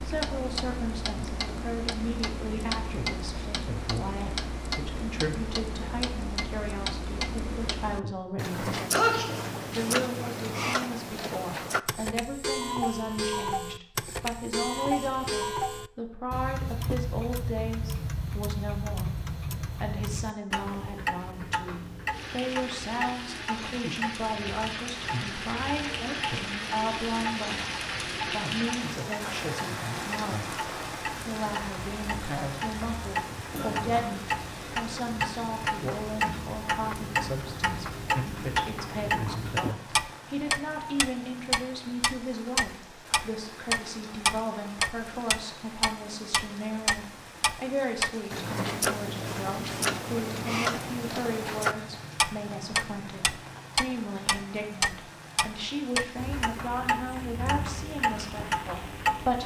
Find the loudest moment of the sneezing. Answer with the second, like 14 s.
9 s.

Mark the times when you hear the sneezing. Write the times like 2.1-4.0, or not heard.
8.9-9.4, 33.5-34.1.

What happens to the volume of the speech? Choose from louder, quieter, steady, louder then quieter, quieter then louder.
steady.